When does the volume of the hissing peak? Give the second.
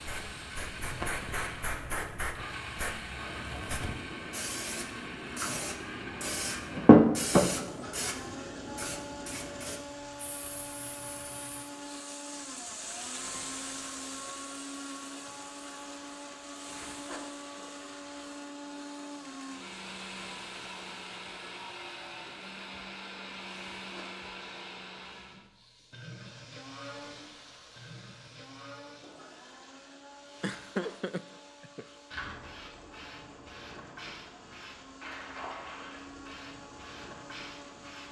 7 s.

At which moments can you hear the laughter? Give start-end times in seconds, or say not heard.
30.4-31.9.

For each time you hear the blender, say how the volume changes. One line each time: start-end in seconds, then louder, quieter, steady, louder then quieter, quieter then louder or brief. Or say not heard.
0.0-38.0 quieter.